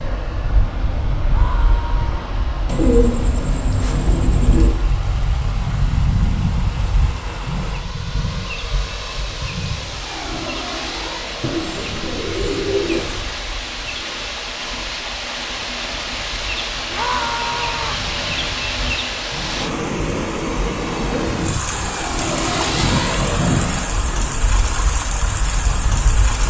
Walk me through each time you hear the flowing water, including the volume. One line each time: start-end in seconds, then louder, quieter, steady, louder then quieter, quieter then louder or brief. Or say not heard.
0.0-26.4 louder.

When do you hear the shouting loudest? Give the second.
17 s.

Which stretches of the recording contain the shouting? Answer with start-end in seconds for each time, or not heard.
1.2-2.4, 16.9-18.1.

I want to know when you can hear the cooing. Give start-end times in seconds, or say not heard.
2.6-4.7, 11.4-13.2, 21.7-24.3.